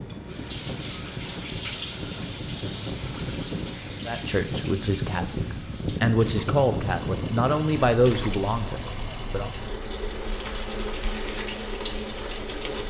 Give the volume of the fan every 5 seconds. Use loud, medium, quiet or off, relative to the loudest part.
loud, loud, quiet.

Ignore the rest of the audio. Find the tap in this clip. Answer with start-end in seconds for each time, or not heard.
0.0-12.8.